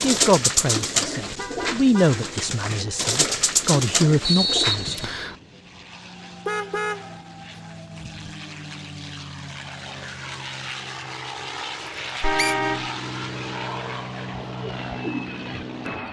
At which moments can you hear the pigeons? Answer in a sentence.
You can hear the pigeons from 0.0 to 5.0 s and from 14.3 to 16.0 s.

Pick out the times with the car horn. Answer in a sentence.
You can hear the car horn from 1.2 to 2.2 s, from 6.5 to 8.3 s and from 12.2 to 12.9 s.